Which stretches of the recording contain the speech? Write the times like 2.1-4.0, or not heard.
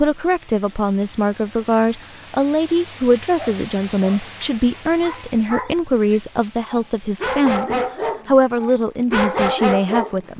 0.0-10.3.